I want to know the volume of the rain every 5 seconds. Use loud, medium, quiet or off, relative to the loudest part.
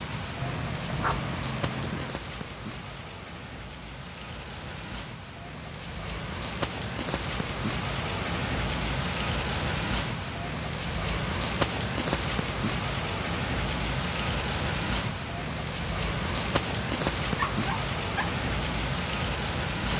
medium, loud, loud, loud.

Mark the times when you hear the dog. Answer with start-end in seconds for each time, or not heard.
0.4-2.1, 17.4-18.4.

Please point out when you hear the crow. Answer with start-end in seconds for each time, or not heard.
not heard.